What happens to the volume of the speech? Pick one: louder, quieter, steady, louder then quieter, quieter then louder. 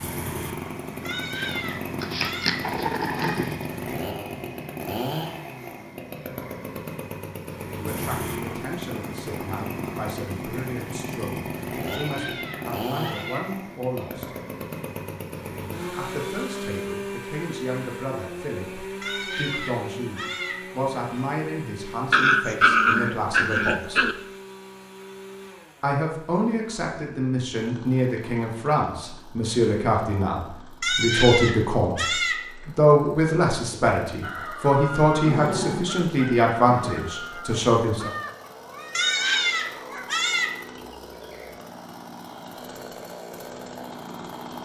louder.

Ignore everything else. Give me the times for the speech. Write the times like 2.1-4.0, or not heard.
7.8-14.3, 15.8-24.1, 25.8-38.1.